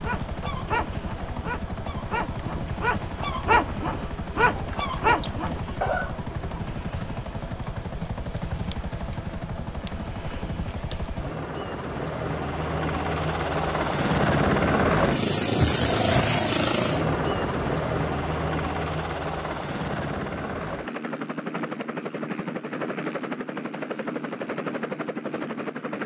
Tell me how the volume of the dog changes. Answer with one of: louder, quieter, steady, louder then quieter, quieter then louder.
louder.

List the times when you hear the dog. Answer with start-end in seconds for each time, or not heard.
0.0-6.2.